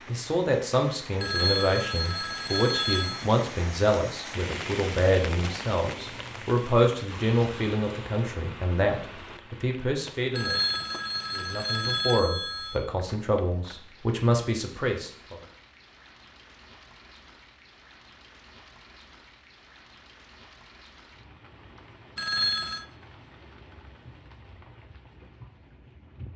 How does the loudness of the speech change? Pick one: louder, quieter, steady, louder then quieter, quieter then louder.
steady.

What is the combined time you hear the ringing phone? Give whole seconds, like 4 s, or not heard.
5 s.